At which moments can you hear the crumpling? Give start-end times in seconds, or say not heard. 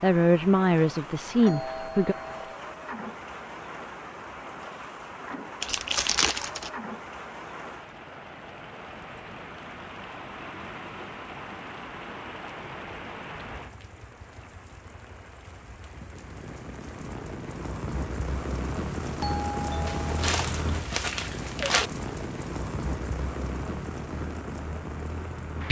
5.6-6.7, 19.9-21.9.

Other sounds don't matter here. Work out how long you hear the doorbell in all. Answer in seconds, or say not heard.
2 s.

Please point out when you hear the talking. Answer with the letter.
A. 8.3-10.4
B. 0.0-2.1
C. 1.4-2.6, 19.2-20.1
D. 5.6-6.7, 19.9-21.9
B.